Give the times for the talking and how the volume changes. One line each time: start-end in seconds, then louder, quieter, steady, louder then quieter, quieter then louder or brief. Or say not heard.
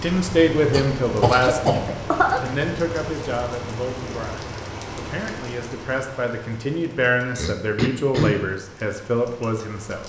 0.0-10.0 quieter then louder.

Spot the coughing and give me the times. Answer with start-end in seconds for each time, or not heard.
0.7-2.5, 7.3-8.4.